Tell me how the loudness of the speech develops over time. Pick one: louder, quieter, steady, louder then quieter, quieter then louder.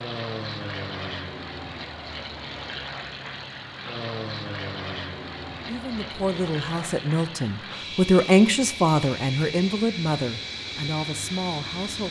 louder then quieter.